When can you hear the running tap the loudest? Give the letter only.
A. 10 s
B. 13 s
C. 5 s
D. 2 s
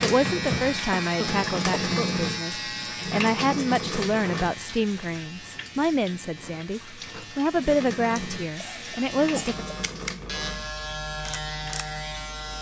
D.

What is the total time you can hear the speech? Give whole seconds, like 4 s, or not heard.
10 s.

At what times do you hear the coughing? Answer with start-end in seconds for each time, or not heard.
1.0-2.1, 8.2-9.6.